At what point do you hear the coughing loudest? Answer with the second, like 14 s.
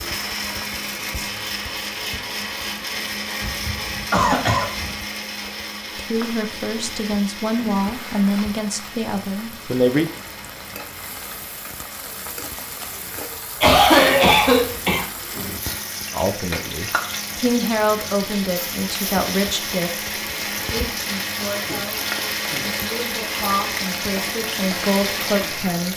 14 s.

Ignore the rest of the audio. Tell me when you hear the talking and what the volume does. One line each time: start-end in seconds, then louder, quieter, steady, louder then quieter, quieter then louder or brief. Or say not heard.
6.0-10.1 louder then quieter
16.1-25.9 quieter then louder.